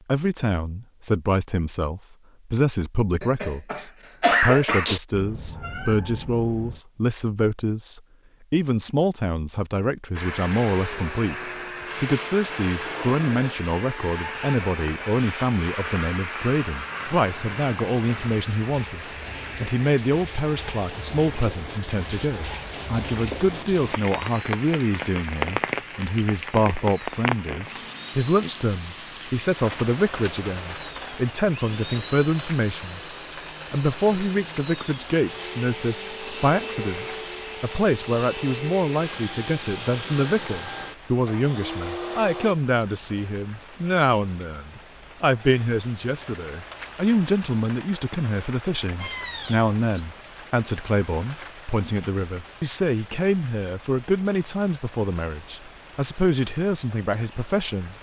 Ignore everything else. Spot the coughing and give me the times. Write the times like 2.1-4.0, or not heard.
3.2-5.0.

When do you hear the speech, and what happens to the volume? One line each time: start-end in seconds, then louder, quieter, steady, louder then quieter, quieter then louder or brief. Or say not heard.
0.1-33.0 steady
33.7-57.9 steady.